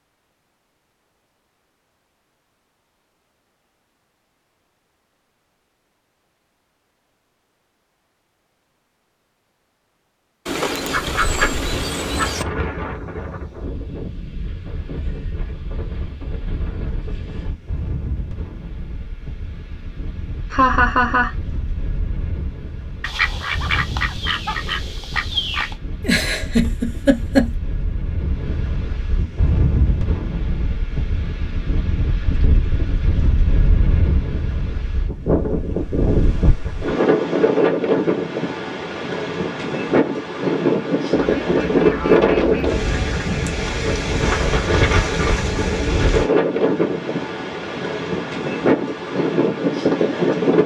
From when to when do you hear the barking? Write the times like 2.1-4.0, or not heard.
not heard.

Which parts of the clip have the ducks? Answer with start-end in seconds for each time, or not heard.
10.4-12.4, 23.0-25.8, 41.1-43.4.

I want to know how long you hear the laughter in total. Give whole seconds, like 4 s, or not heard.
2 s.